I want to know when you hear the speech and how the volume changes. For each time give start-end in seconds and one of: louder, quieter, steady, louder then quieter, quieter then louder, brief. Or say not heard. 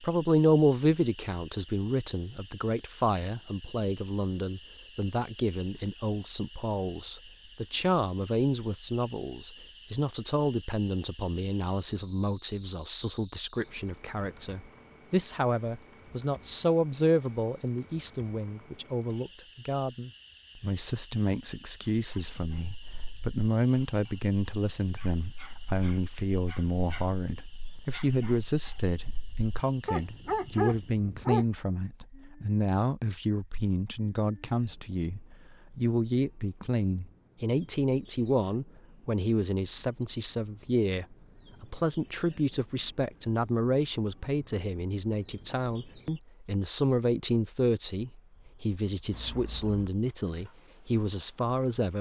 0.0-51.9 steady.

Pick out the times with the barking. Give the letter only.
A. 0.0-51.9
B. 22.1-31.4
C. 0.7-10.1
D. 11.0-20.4
B.